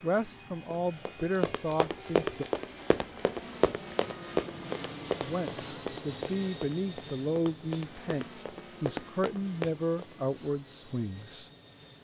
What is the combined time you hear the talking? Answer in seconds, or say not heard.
9 s.